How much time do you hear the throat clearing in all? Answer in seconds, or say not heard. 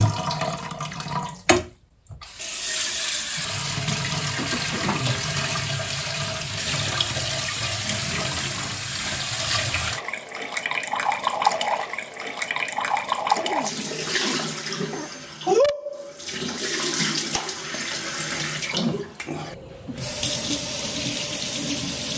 3 s.